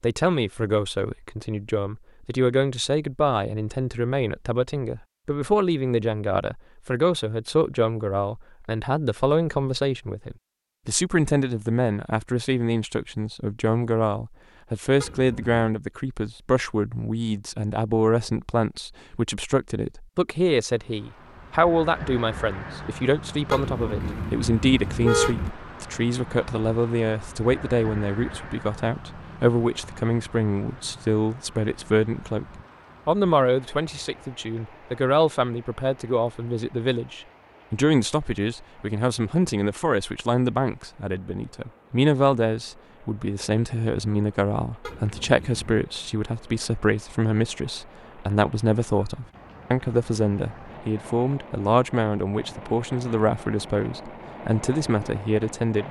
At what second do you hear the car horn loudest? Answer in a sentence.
The loudest moment of the car horn is at 25 seconds.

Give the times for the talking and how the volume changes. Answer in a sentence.
You can hear the talking from 0.0 to 32.5 s, at a steady volume; and from 33.0 to 55.8 s, at a steady volume.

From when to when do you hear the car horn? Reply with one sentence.
The car horn can be heard from 15.0 to 15.7 s, from 23.5 to 25.5 s and from 44.8 to 45.8 s.